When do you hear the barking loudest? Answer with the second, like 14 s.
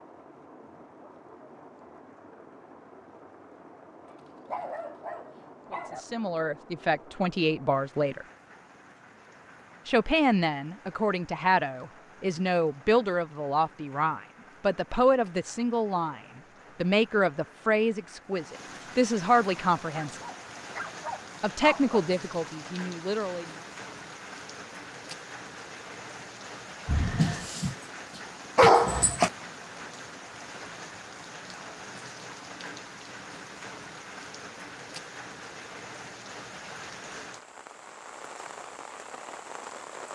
29 s.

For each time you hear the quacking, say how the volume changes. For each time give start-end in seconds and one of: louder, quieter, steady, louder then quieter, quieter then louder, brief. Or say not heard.
not heard.